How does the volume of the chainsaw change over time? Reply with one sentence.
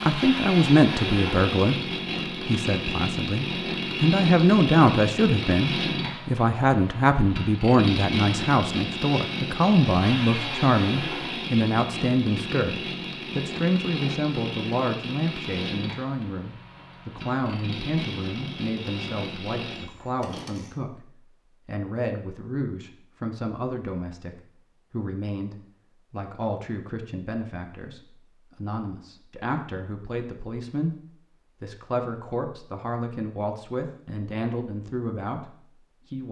The volume of the chainsaw goes down.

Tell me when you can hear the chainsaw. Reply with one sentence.
You can hear the chainsaw from 0.0 to 20.8 s.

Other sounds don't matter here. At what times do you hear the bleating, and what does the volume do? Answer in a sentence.
You can't hear the bleating here.